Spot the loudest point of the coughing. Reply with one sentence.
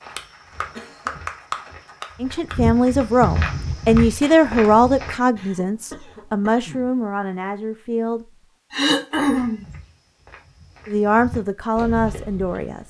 The loudest moment of the coughing is at 9 seconds.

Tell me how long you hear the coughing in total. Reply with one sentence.
The coughing can be heard for 3 seconds in total.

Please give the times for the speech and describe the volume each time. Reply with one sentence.
You can hear the speech from 2.2 to 8.2 s, getting quieter; and briefly from 10.8 to 12.8 s.